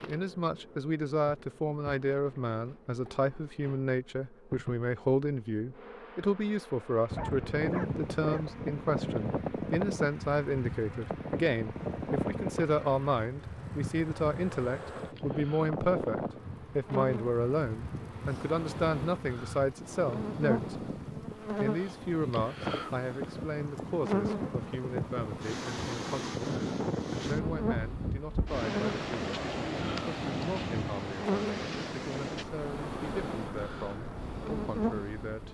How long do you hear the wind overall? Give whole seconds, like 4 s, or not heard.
28 s.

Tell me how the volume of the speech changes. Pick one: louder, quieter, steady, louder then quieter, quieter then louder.
quieter.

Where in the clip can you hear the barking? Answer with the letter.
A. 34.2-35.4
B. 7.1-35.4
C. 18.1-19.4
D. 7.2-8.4
D.